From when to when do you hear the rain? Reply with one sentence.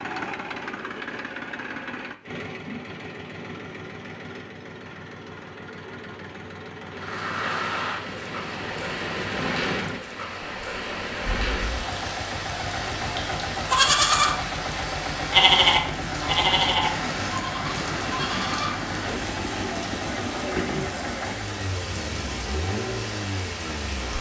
You can hear the rain from 6.9 to 24.1 s.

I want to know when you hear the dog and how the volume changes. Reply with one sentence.
You can't hear the dog here.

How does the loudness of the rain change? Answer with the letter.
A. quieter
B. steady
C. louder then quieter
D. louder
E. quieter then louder
B.